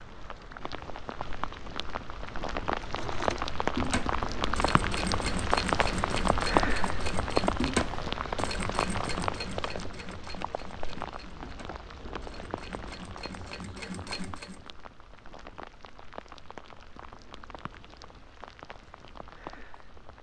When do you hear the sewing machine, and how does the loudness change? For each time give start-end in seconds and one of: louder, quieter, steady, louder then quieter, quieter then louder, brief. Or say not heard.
2.8-14.7 quieter then louder.